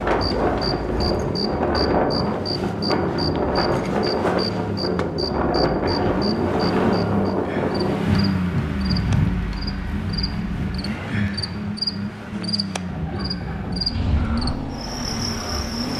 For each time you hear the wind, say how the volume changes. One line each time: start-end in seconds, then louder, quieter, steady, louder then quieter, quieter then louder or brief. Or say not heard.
0.0-15.9 quieter.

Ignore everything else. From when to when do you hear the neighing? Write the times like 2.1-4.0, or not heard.
12.8-14.6.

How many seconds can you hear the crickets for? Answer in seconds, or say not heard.
16 s.